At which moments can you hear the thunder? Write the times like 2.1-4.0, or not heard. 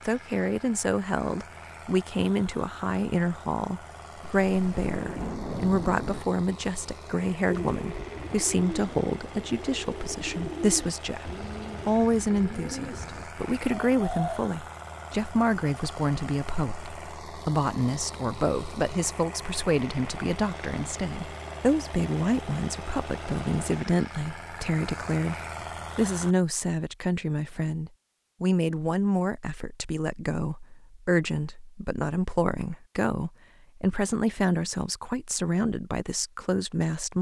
4.5-6.2.